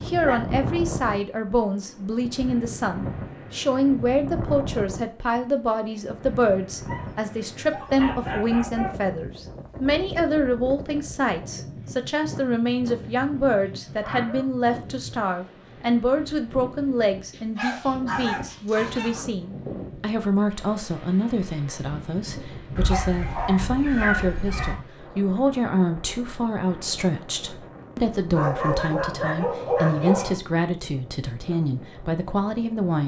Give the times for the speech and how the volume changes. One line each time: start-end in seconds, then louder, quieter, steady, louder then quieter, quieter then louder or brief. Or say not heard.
0.1-33.0 steady.